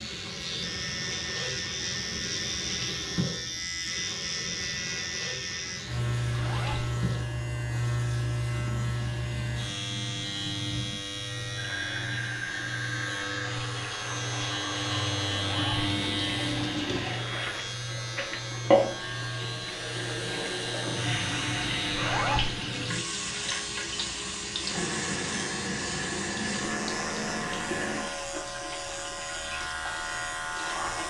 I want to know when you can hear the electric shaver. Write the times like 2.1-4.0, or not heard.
0.0-31.0.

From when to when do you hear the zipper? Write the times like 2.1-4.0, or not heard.
6.3-6.9, 15.4-15.8, 21.9-22.5.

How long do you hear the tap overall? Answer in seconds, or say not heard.
31 s.